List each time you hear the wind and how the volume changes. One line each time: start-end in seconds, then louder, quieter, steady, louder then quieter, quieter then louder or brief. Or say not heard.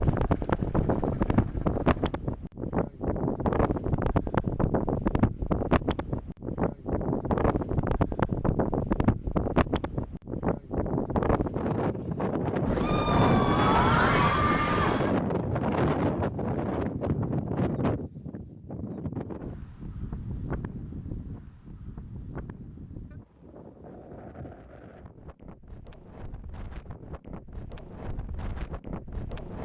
0.0-29.6 quieter.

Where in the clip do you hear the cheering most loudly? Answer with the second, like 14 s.
14 s.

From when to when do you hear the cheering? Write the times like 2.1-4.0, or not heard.
12.7-15.2.